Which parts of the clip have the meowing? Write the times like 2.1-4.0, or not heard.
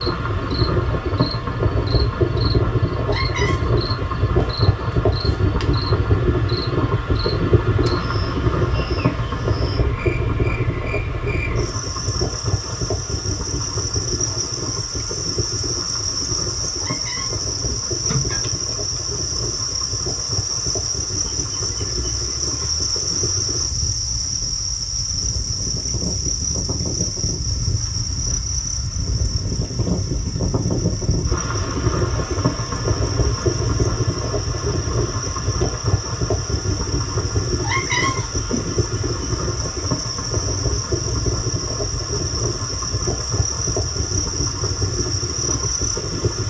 3.0-3.7, 16.8-18.4, 37.6-38.6.